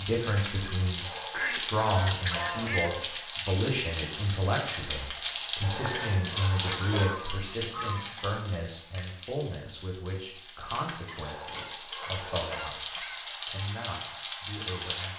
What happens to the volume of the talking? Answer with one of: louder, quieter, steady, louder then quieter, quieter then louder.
quieter.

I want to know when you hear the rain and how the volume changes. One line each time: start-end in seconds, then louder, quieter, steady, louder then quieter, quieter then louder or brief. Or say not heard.
0.0-15.1 quieter then louder.